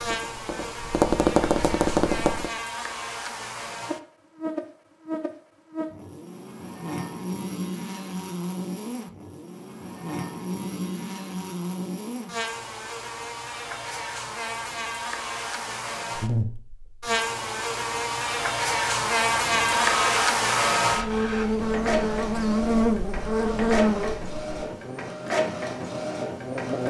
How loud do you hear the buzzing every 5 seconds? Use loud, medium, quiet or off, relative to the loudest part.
medium, medium, medium, loud, loud, medium.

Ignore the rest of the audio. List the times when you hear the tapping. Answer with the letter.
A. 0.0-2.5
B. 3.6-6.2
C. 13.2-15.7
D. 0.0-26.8
A.